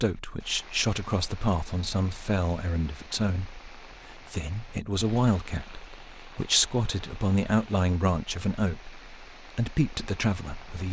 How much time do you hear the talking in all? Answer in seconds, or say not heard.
11 s.